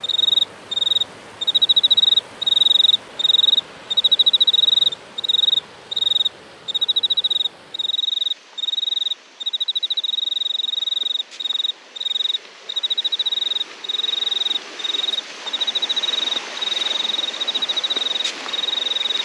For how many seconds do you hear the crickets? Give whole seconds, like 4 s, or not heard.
19 s.